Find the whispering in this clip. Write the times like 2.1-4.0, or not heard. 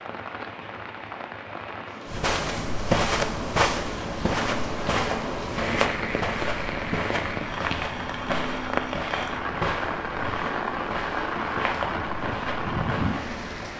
not heard.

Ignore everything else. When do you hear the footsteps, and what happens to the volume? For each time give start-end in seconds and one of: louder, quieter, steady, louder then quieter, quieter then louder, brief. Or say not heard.
2.0-13.7 quieter.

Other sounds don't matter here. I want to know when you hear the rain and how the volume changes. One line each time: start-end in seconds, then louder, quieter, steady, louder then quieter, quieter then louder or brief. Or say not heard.
0.0-13.7 louder.